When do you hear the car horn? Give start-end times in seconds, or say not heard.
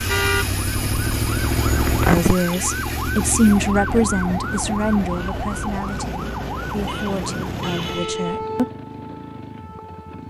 0.1-0.5, 6.8-8.4.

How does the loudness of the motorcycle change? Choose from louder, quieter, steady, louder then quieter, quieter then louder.
quieter.